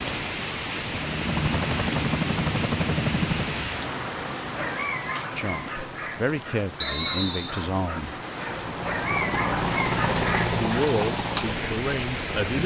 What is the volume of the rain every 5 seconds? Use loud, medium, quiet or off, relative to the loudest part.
loud, medium, loud.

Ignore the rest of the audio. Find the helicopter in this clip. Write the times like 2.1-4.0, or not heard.
0.0-3.8, 8.4-12.4.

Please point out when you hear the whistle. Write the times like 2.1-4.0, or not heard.
6.8-7.7.